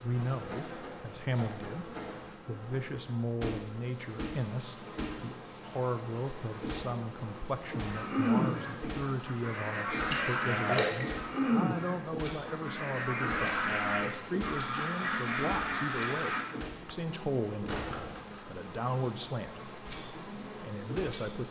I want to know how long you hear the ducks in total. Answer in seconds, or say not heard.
9 s.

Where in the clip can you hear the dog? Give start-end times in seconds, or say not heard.
not heard.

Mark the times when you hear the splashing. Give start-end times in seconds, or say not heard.
10.1-11.1.